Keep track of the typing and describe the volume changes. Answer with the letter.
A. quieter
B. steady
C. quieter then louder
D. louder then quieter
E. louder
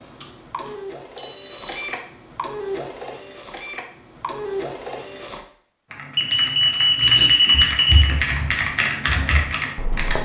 E.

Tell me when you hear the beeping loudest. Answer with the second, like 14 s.
7 s.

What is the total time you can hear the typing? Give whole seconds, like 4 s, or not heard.
4 s.